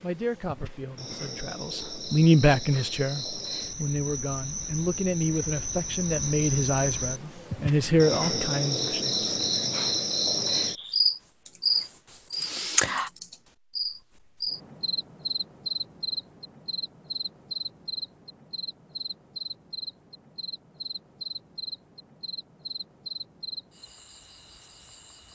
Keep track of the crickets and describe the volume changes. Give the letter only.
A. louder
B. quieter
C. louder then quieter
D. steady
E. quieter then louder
C.